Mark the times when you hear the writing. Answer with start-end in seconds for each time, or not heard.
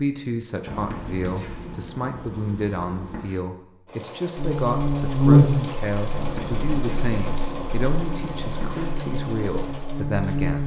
0.7-3.4, 6.1-8.9.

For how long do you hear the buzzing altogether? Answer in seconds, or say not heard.
6 s.